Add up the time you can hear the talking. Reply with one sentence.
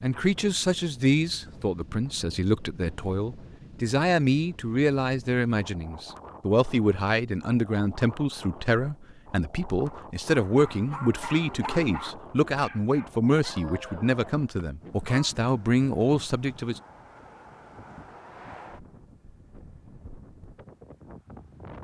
The talking can be heard for 17 seconds in total.